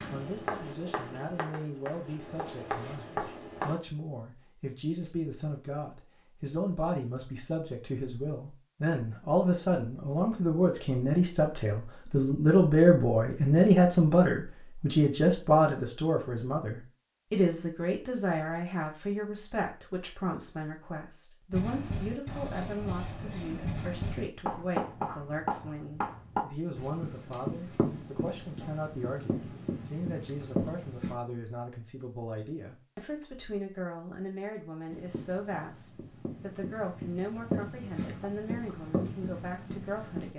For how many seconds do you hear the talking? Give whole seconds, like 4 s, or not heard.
40 s.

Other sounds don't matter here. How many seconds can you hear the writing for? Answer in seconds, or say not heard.
19 s.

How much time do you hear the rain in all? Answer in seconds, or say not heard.
not heard.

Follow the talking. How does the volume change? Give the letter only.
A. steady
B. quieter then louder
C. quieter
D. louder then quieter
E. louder
D.